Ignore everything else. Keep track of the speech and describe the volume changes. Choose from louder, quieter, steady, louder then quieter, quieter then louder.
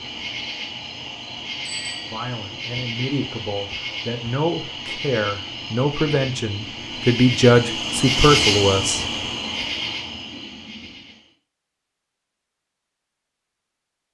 louder.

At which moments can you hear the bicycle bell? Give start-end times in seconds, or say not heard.
1.6-2.1.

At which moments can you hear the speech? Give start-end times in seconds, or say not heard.
2.1-9.1.